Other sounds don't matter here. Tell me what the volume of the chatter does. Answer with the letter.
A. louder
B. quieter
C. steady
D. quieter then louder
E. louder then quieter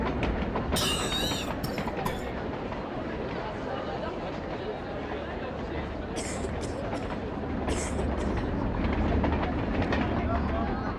C.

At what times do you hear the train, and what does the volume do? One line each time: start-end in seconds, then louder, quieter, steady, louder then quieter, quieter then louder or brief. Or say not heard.
0.0-10.9 quieter then louder.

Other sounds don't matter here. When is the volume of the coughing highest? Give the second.
1 s.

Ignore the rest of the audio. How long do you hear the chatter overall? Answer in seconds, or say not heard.
11 s.